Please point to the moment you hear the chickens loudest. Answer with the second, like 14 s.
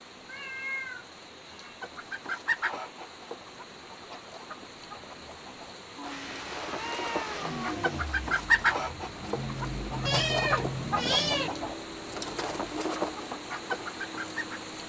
9 s.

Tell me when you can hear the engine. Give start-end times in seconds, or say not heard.
6.0-14.8.